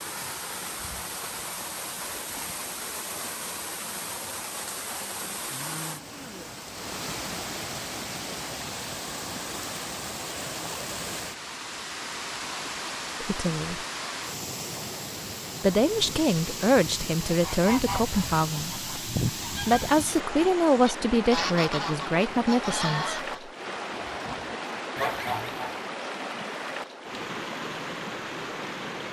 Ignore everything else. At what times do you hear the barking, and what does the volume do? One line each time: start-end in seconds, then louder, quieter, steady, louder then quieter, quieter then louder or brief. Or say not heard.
not heard.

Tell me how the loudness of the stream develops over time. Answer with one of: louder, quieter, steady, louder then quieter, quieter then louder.
steady.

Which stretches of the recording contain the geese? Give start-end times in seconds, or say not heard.
17.2-25.8.